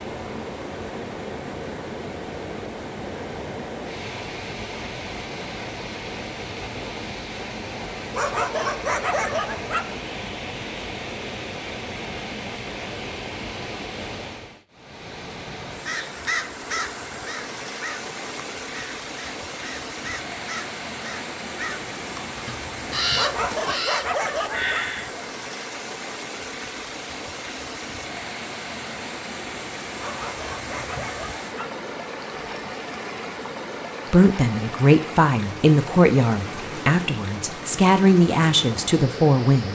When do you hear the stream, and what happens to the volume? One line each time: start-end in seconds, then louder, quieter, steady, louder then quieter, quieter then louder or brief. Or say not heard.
0.0-39.6 steady.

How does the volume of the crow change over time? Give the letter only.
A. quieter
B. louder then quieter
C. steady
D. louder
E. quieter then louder
E.